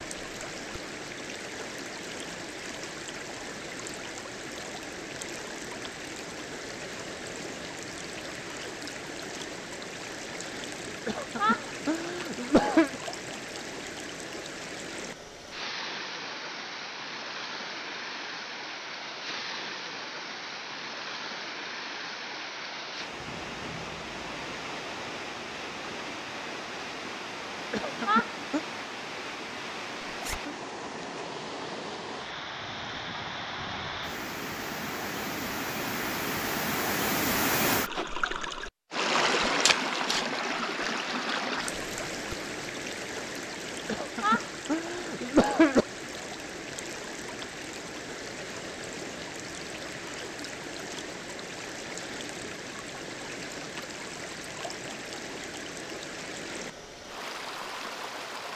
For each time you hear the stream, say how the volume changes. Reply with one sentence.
You can hear the stream from 0.0 to 58.5 s, getting louder then quieter.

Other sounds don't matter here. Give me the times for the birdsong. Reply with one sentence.
You can't hear the birdsong here.